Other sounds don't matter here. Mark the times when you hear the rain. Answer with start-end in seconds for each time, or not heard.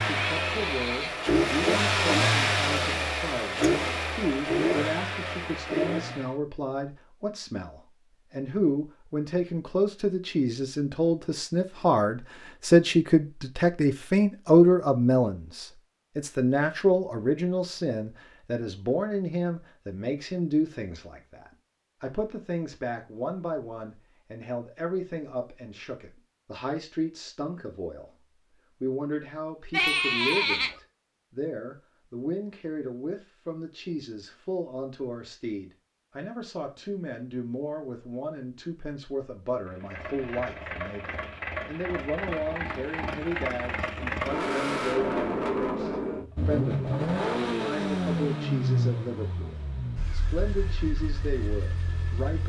not heard.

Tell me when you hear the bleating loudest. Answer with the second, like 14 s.
30 s.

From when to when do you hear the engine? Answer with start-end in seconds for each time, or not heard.
0.0-6.3, 39.6-52.4.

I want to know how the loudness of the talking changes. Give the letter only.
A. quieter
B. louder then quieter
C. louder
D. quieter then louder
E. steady
B.